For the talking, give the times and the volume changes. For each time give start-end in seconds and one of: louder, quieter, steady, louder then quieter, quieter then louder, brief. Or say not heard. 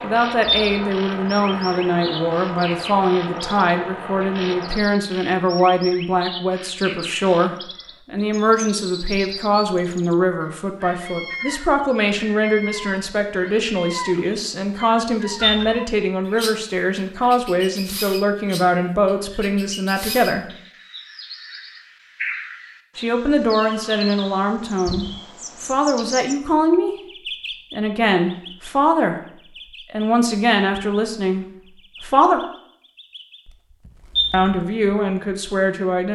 0.0-20.6 steady
22.9-32.4 steady
34.3-36.0 brief.